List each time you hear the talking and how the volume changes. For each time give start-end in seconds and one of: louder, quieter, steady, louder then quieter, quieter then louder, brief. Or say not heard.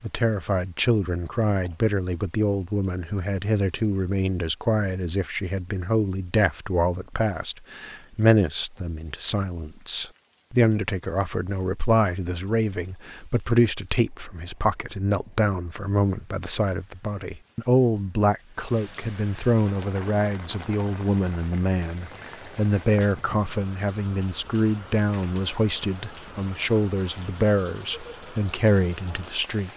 0.0-29.7 steady.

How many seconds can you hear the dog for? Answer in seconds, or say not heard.
not heard.